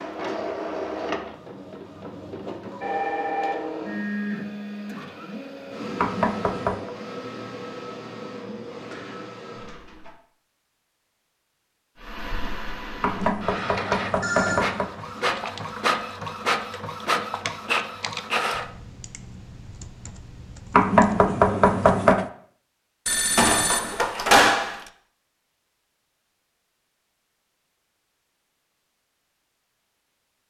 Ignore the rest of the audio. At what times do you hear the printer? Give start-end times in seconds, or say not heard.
0.0-10.2, 11.9-18.6.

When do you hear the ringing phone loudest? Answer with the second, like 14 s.
24 s.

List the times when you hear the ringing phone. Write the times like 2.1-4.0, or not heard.
2.8-4.2, 14.2-15.4, 23.1-24.8.